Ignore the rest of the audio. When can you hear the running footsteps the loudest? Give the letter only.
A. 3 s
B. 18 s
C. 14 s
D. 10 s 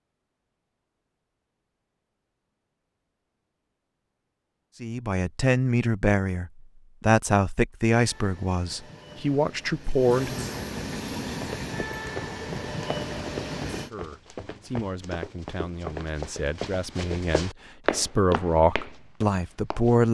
B.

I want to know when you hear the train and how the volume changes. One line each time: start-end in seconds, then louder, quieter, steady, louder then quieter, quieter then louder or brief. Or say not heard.
8.0-13.9 louder.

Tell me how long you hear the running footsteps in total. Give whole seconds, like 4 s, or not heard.
9 s.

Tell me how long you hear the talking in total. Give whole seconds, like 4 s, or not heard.
12 s.